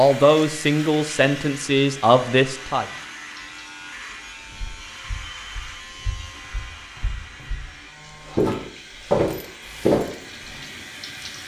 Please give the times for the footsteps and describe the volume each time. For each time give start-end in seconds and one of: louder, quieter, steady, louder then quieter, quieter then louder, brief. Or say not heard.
4.5-10.5 louder.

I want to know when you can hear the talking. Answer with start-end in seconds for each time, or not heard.
0.0-2.9.